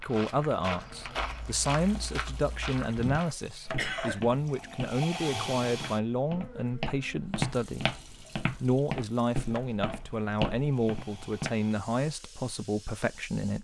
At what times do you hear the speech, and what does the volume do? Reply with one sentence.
You can hear the speech from 0.0 to 13.5 s, at a steady volume.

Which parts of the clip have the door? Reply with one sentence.
You can't hear the door here.